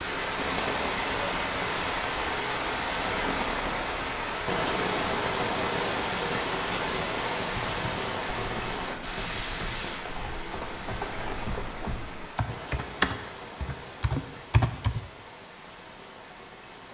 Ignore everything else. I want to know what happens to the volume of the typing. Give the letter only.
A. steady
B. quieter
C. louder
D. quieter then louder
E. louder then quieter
C.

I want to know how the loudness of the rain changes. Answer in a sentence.
The loudness of the rain goes down.